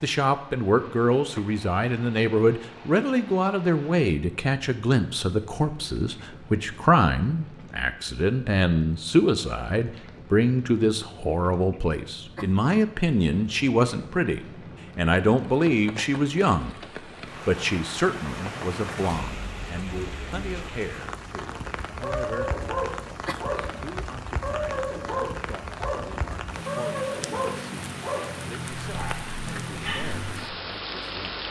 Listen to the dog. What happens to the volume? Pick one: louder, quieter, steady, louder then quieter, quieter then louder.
quieter.